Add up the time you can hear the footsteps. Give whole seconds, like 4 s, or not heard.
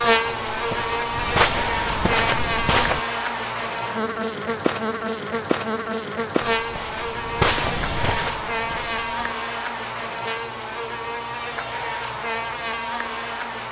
6 s.